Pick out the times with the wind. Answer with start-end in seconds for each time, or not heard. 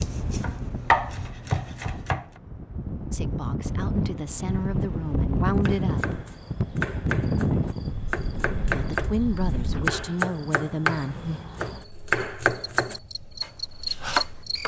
0.0-10.1.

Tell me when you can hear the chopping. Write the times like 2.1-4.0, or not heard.
0.0-2.2, 5.7-14.6.